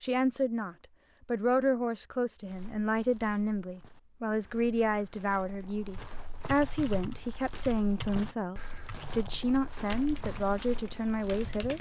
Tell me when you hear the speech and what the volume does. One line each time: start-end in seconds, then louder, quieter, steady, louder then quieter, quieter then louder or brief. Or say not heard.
0.0-11.7 steady.